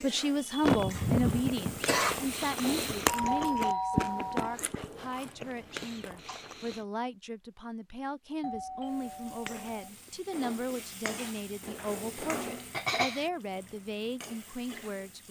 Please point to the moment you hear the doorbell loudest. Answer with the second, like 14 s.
4 s.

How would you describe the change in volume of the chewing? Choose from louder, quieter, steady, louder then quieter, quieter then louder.
louder then quieter.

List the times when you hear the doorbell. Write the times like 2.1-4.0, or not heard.
3.0-4.5, 8.4-9.9.